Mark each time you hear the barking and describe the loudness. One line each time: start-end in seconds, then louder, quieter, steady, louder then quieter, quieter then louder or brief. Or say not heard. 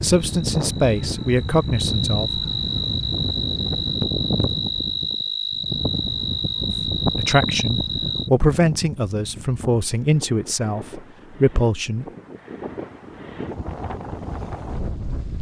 not heard.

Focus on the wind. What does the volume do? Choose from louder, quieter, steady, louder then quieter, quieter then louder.
quieter then louder.